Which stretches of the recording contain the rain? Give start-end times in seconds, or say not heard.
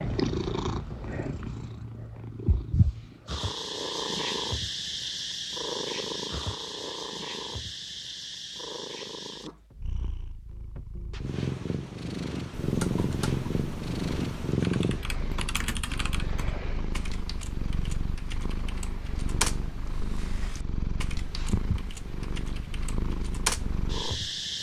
not heard.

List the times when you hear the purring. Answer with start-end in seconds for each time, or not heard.
0.0-24.5.